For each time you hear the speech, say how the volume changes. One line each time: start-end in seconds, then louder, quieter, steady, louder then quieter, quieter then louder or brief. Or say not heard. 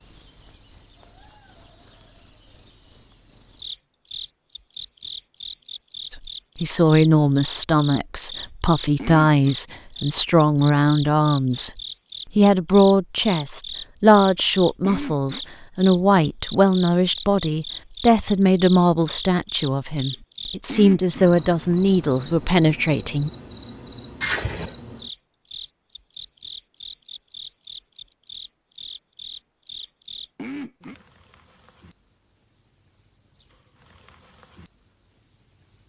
6.1-23.3 steady.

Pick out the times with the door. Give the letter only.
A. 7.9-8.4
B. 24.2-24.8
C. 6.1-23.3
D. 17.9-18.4
B.